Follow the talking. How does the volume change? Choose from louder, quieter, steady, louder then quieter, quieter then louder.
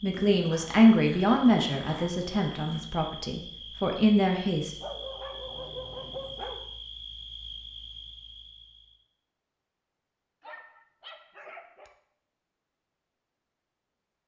quieter then louder.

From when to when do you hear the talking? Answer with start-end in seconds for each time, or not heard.
0.0-4.8.